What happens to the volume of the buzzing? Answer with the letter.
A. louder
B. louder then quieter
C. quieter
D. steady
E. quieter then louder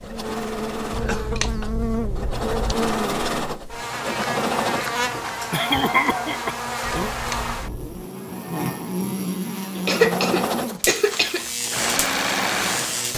D.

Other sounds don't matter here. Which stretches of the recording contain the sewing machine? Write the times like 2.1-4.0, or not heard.
0.0-5.3, 9.8-13.1.